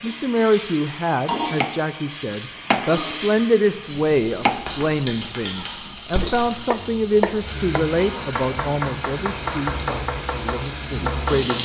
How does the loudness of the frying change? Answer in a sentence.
The volume of the frying stays about the same.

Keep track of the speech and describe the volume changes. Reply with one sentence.
The loudness of the speech goes down.